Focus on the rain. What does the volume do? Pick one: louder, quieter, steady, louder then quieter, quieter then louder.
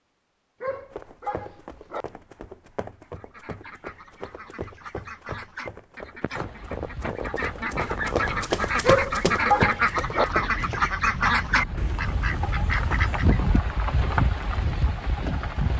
louder.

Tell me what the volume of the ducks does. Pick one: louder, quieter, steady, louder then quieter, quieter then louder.
louder.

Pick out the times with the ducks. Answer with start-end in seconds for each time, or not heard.
3.0-13.4.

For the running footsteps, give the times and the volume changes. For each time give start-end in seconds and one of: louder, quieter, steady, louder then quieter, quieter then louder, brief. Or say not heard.
0.7-10.9 louder.